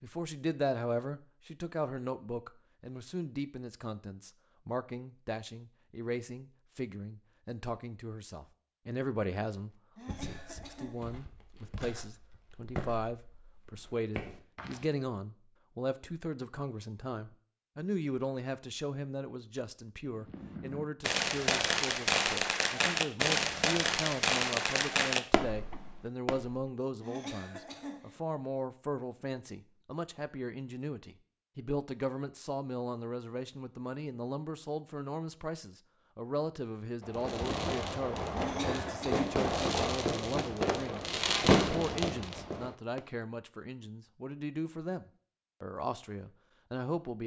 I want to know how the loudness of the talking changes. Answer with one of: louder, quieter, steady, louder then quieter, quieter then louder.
steady.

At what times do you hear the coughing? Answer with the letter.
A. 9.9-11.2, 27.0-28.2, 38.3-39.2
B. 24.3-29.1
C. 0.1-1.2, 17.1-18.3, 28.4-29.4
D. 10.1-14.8
A.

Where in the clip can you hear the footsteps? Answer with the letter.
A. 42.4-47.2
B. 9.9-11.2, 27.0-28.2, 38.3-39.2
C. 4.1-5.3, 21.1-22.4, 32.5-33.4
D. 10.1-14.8
D.